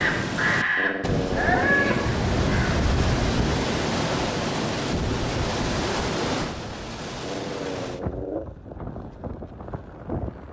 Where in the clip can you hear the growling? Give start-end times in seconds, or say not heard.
0.8-2.0, 7.2-8.4.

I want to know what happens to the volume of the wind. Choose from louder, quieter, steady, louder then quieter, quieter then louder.
quieter.